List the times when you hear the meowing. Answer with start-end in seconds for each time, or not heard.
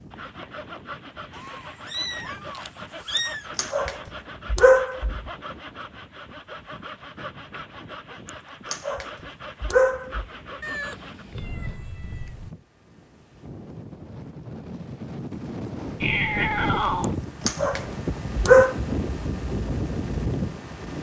1.3-3.5, 10.6-12.5, 16.0-17.1.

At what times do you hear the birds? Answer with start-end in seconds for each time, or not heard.
not heard.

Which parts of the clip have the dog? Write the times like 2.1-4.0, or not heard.
3.1-5.3, 8.2-10.2, 17.0-18.8.